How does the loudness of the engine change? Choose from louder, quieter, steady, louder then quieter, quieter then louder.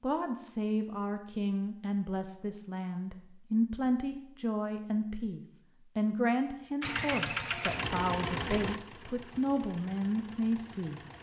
quieter.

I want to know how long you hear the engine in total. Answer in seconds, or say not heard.
4 s.